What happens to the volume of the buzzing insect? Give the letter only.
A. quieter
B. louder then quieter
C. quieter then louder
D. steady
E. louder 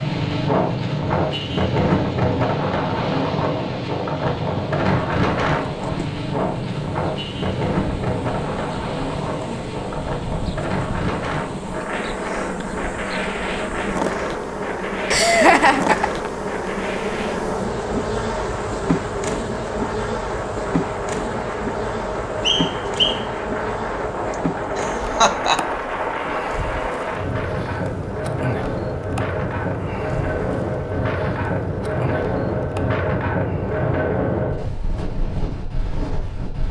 B.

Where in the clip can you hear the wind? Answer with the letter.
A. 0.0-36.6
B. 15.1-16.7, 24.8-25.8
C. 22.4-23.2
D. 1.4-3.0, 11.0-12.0
A.